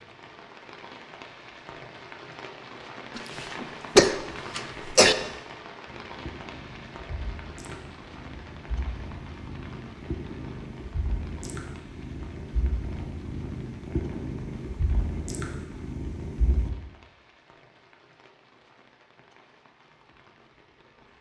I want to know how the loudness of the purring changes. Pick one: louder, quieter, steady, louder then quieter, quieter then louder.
louder.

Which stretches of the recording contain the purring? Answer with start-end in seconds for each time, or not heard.
5.8-16.7.